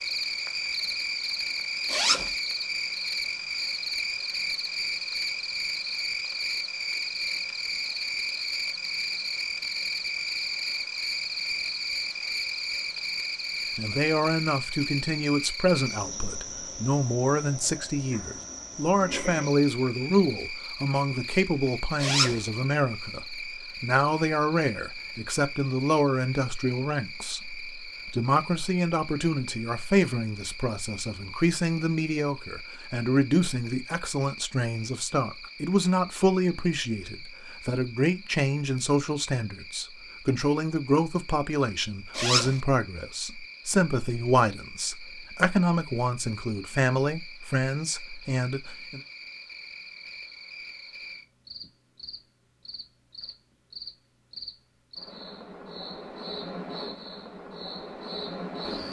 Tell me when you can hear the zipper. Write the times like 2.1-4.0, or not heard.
1.9-2.4, 22.0-22.4, 42.1-42.6.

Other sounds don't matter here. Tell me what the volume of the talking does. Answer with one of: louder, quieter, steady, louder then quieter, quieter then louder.
steady.